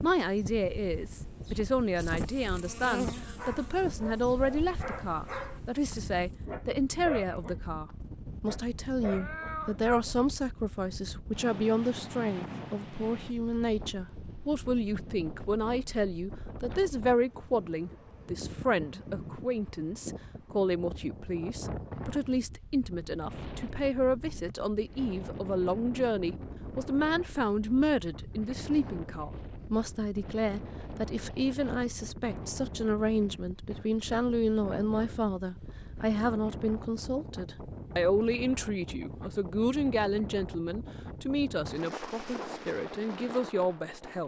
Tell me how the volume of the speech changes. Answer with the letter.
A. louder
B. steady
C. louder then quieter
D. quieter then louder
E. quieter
B.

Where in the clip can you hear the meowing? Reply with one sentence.
You can hear the meowing from 9.0 to 9.8 s.